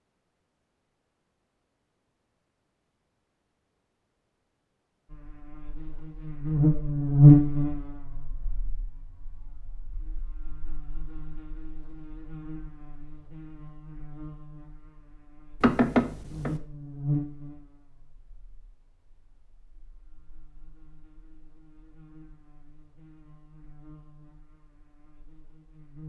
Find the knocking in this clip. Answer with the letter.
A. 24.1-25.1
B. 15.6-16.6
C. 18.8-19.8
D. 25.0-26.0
B.